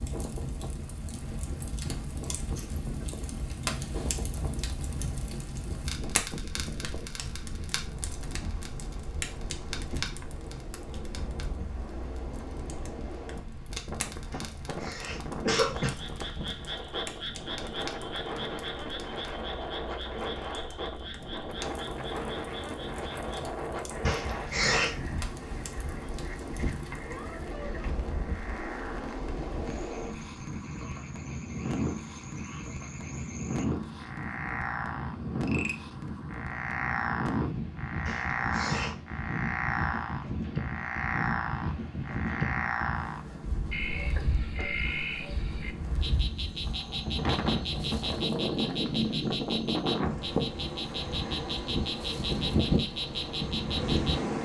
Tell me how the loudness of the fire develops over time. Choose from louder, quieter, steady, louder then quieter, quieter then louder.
quieter.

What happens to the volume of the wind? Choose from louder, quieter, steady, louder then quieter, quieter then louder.
louder.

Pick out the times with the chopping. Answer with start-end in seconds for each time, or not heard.
not heard.